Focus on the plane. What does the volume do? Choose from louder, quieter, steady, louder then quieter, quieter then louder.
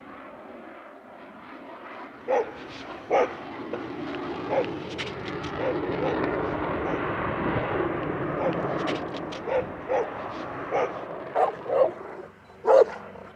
louder then quieter.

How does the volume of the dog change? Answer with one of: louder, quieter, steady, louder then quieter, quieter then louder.
quieter then louder.